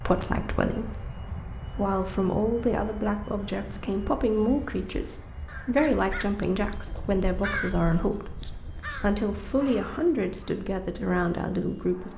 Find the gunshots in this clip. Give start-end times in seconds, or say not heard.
not heard.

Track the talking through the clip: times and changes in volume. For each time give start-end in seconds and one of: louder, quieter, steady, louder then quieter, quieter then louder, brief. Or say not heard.
0.0-12.1 steady.